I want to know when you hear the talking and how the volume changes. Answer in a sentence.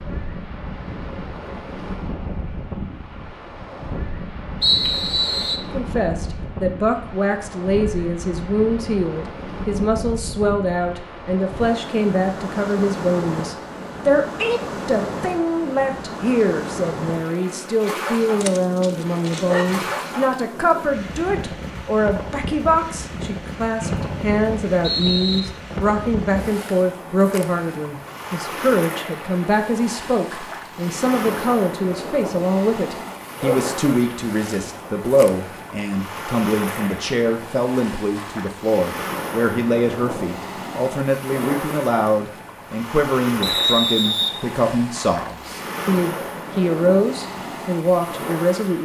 The talking can be heard from 5.7 to 48.8 s, at a steady volume.